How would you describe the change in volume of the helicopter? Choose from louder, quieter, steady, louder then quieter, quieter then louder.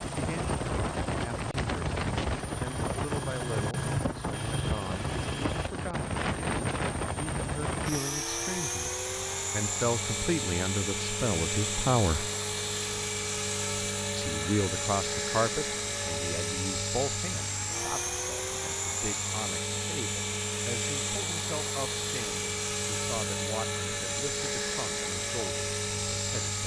steady.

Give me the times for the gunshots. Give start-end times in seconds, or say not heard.
not heard.